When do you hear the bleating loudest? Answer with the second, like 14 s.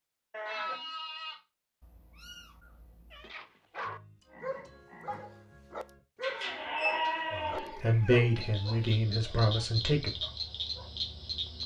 7 s.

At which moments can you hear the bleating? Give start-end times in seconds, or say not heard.
0.3-1.4, 6.2-7.8.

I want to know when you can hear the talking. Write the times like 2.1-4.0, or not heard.
7.3-10.2.